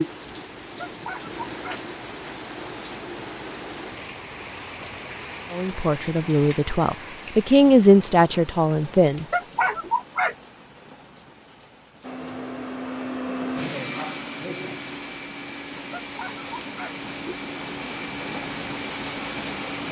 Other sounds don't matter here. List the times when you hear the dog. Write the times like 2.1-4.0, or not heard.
0.8-1.8, 9.3-10.3, 15.9-16.9.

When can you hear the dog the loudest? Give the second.
10 s.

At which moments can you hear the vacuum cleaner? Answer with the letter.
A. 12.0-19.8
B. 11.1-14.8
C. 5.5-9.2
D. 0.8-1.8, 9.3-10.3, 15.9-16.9
A.